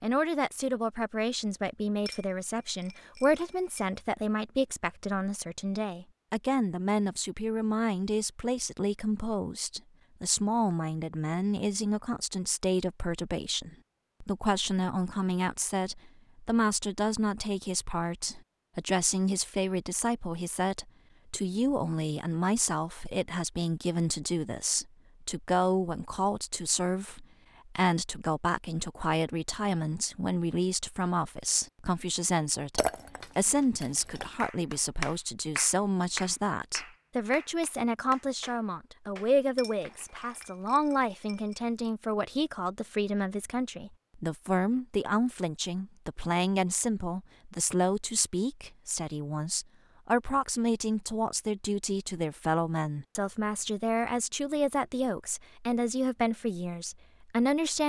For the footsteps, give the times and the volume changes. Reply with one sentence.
The footsteps can't be heard in this clip.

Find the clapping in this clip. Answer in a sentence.
The clapping can be heard from 34.4 to 40.7 s.